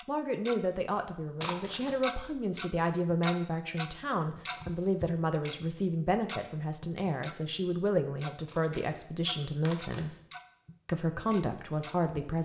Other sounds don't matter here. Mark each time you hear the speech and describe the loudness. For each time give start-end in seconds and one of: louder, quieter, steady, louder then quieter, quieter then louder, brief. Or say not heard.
0.1-10.2 steady
10.8-12.4 brief.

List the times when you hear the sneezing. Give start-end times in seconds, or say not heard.
not heard.